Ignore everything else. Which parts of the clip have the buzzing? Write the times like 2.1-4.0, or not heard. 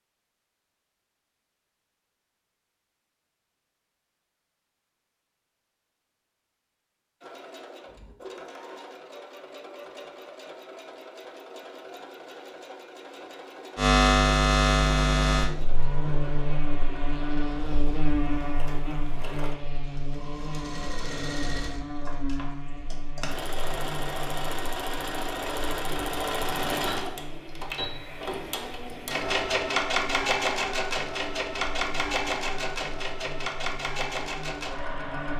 13.8-35.3.